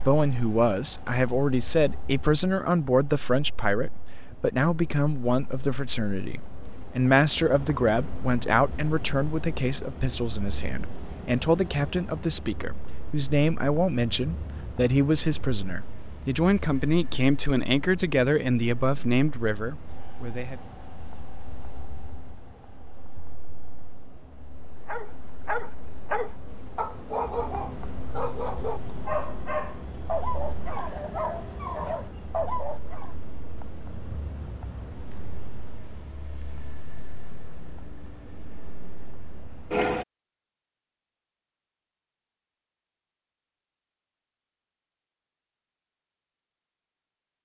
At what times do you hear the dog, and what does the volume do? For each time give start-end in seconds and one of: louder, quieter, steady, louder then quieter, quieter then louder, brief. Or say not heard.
24.9-33.1 steady.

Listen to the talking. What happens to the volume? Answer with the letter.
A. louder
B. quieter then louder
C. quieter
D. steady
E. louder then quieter
D.